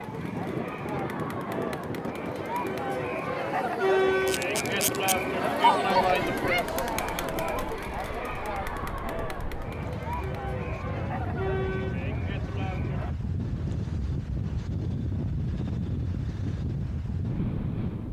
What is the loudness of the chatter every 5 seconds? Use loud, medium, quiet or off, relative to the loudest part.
loud, loud, medium, off.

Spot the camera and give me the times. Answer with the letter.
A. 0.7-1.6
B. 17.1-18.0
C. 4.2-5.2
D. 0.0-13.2
C.